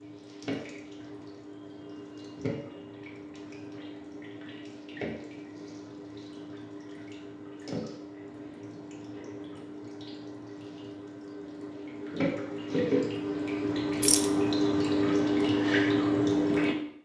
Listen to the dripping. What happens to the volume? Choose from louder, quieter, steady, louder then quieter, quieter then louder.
louder.